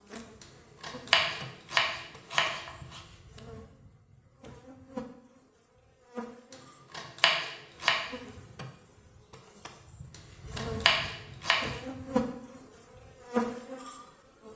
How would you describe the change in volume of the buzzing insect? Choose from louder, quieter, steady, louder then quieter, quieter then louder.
louder.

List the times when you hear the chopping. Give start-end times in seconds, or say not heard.
0.4-3.0, 6.5-8.0, 10.1-11.7.